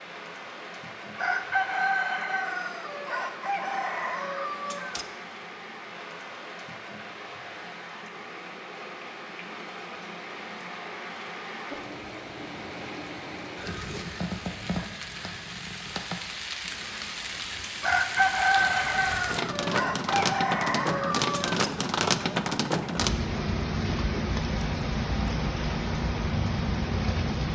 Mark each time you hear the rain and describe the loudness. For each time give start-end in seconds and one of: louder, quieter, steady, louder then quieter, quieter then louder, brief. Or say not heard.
0.0-27.5 louder.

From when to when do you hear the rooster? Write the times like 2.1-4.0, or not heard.
1.1-5.0, 17.8-21.7.